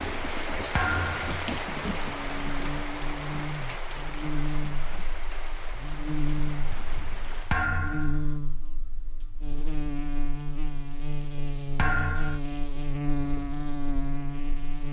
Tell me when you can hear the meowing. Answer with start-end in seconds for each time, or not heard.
not heard.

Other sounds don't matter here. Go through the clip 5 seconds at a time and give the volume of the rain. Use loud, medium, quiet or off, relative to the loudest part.
loud, medium, off.